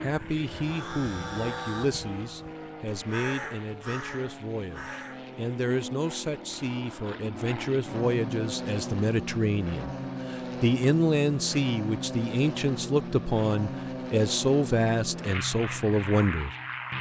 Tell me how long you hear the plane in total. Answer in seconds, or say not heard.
17 s.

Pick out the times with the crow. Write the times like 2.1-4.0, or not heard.
0.0-5.3.